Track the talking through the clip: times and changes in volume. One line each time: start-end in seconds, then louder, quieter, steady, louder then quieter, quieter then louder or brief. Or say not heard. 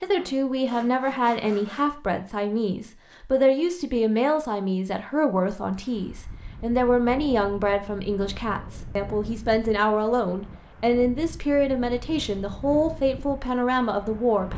0.0-14.5 steady.